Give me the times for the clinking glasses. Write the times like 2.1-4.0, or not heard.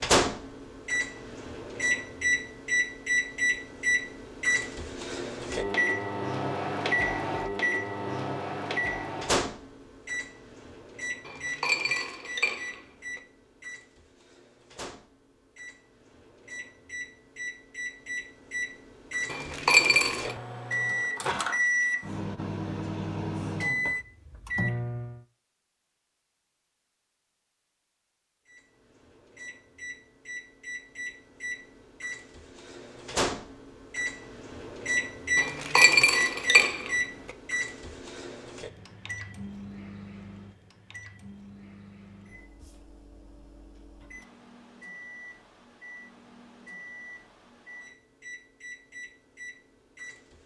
11.2-13.2, 19.3-20.4, 35.4-36.9.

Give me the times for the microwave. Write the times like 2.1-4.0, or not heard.
0.0-25.2, 28.4-50.4.